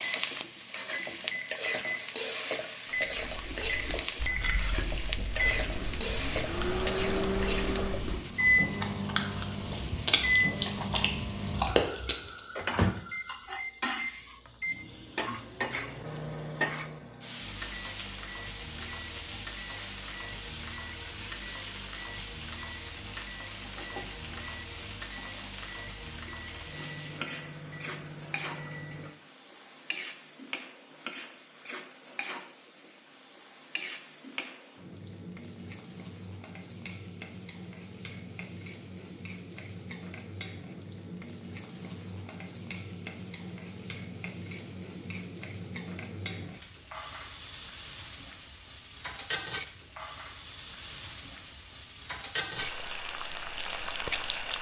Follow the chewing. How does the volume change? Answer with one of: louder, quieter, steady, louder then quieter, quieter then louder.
louder.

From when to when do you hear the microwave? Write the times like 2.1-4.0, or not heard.
0.0-29.1.